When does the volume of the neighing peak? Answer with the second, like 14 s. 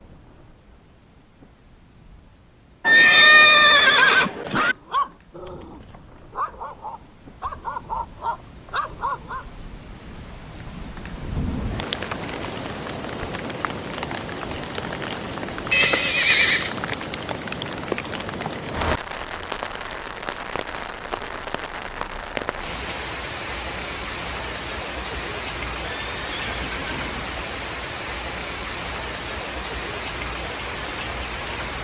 3 s.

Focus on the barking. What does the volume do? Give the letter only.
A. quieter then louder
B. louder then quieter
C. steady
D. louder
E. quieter
A.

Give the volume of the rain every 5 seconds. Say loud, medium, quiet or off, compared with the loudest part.
quiet, quiet, loud, loud, loud, loud, loud.